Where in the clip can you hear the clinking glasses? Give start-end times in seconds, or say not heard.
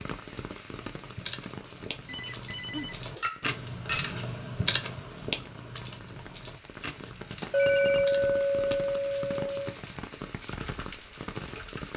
3.2-4.2, 7.5-9.8.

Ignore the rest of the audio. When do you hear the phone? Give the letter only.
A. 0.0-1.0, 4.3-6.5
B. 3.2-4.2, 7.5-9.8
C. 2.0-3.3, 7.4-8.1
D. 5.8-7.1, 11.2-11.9
C.